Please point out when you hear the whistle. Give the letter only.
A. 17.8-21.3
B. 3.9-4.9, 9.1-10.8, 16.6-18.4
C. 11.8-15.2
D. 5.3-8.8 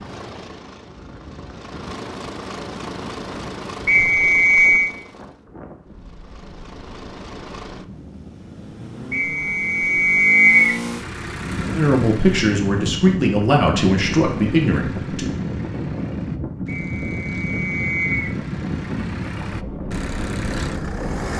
B.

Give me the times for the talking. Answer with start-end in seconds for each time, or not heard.
11.8-15.2.